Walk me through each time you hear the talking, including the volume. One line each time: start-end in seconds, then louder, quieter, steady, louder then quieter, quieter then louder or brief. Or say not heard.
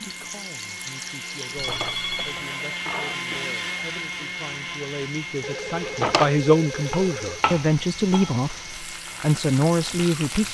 0.0-10.4 louder.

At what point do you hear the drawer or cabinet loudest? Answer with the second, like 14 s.
6 s.